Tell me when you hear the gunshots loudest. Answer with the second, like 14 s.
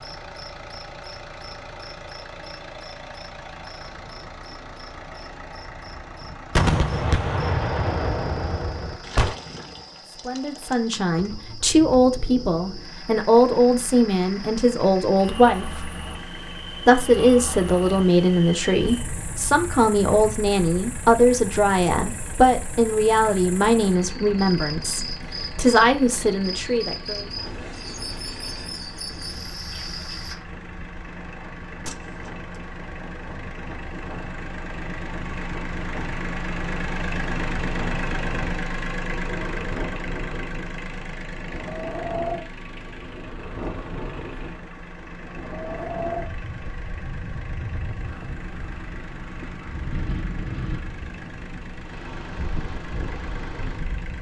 7 s.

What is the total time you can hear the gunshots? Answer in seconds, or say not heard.
3 s.